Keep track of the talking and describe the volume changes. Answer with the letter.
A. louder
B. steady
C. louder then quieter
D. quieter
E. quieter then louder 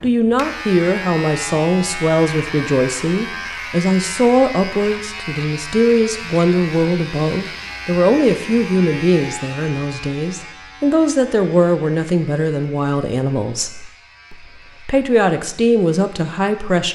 B.